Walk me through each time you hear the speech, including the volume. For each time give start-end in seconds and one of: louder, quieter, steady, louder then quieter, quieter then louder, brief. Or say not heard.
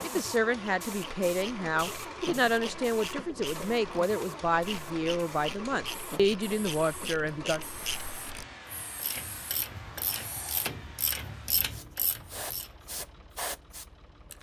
0.0-7.6 steady.